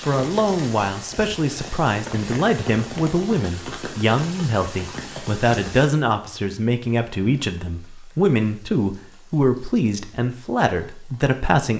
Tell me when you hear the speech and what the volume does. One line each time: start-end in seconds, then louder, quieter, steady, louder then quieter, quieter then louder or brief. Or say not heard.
0.1-11.7 steady.